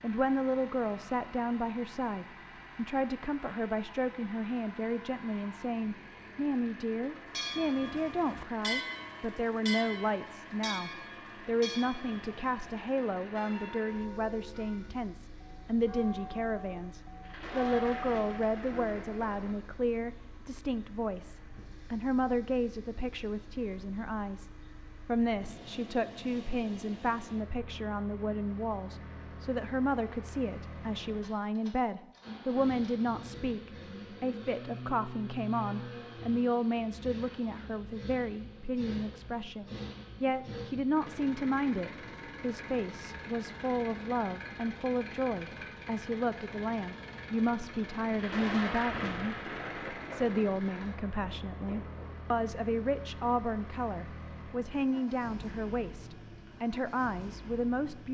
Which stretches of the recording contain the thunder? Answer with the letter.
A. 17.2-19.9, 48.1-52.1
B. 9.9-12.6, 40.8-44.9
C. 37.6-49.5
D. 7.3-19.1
A.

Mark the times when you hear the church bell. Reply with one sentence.
You can hear the church bell from 7.3 to 19.1 s.